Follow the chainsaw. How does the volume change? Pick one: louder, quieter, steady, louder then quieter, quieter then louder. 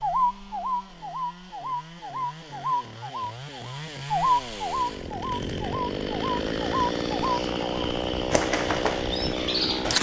louder.